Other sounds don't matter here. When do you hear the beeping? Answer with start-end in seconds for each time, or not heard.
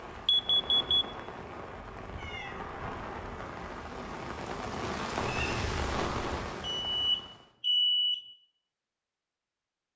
0.2-1.1, 6.6-8.2.